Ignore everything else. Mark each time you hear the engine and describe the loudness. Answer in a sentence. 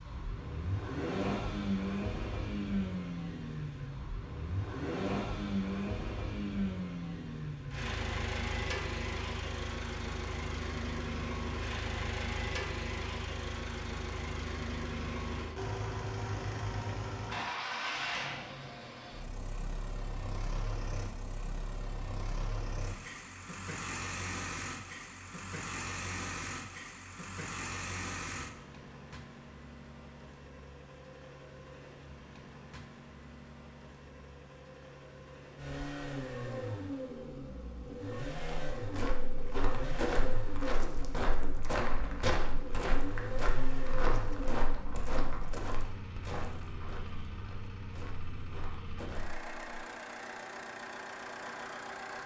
The engine can be heard from 0.0 to 52.2 s, getting quieter.